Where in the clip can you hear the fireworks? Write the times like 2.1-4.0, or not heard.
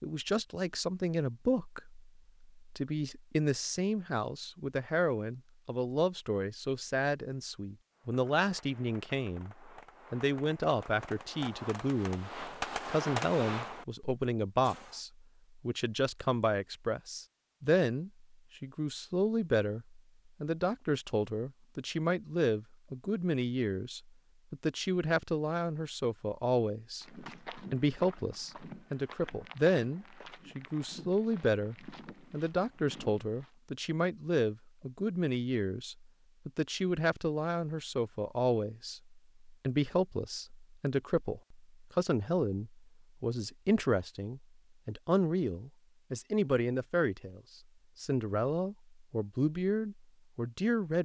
8.0-15.0.